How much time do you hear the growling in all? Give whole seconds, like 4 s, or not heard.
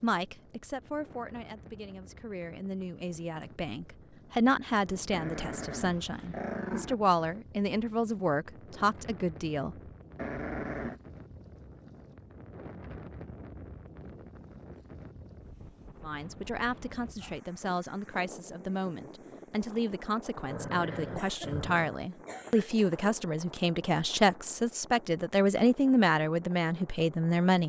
4 s.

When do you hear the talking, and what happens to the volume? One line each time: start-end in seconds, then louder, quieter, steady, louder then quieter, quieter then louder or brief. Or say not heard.
0.0-9.8 louder
16.0-27.6 louder.